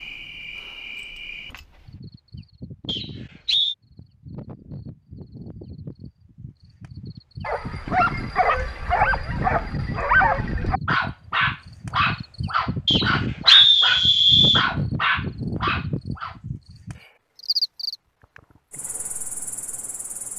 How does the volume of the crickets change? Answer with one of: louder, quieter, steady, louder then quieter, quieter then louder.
louder.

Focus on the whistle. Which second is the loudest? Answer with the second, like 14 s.
14 s.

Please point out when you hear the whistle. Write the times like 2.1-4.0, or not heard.
2.9-3.8, 12.8-14.7.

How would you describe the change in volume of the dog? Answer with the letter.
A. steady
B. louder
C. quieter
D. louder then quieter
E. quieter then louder
A.